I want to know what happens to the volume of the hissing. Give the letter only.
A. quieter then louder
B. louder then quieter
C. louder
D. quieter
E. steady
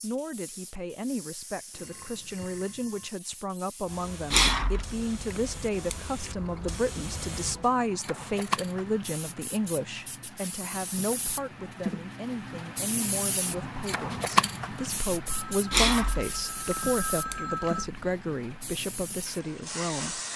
B.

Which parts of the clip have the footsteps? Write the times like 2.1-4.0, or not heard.
not heard.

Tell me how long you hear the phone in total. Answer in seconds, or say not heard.
4 s.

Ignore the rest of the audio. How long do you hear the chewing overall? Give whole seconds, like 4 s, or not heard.
5 s.